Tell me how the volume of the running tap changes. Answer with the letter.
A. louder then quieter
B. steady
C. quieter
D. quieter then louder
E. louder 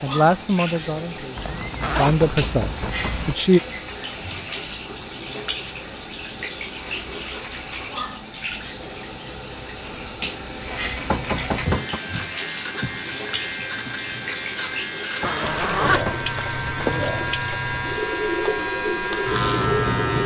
B.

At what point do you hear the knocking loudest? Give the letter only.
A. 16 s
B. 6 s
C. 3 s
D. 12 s
D.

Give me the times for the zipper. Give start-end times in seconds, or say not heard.
1.4-3.4, 15.2-16.9.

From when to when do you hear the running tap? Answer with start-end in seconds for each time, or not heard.
0.0-20.2.